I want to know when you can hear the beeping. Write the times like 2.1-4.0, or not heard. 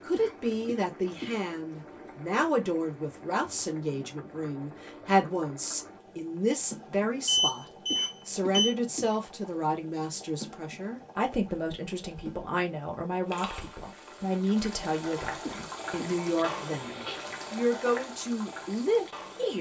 7.2-8.8.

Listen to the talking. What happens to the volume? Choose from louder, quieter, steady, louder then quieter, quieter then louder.
steady.